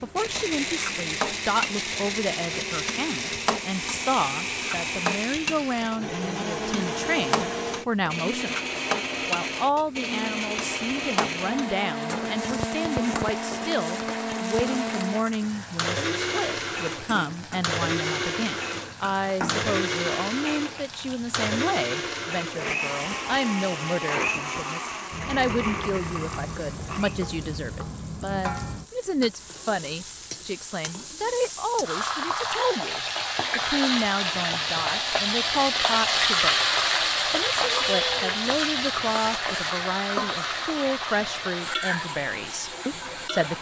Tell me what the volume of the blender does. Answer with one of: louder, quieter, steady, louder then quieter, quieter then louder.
steady.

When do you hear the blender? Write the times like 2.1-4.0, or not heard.
0.0-27.2.